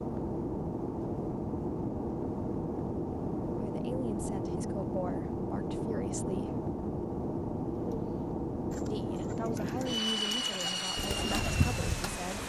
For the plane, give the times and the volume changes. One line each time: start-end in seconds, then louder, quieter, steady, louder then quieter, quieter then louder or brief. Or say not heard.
0.0-12.4 steady.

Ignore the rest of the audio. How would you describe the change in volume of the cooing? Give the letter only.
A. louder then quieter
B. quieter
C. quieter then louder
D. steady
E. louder
E.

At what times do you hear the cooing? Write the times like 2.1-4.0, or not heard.
7.7-12.3.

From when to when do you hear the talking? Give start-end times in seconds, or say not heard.
3.5-6.6, 8.9-12.4.